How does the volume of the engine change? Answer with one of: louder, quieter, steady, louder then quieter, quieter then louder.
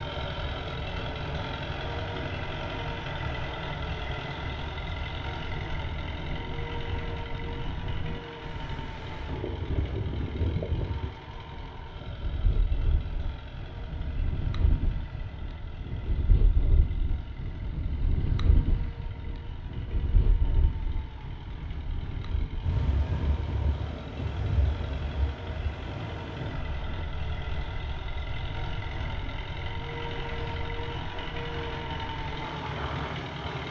quieter then louder.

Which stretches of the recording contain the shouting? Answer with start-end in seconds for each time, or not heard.
not heard.